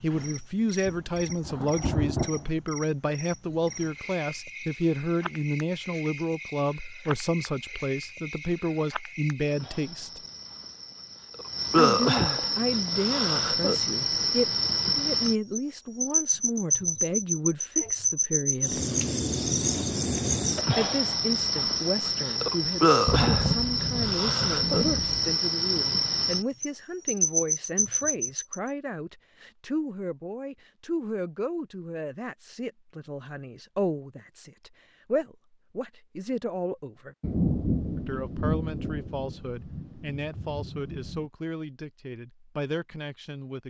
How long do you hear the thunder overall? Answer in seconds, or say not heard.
8 s.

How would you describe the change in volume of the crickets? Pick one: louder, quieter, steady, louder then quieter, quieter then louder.
louder.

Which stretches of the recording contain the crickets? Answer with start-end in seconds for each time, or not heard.
0.0-28.4.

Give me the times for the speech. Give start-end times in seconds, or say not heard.
0.0-10.2, 11.8-18.8, 20.8-37.1, 38.0-43.6.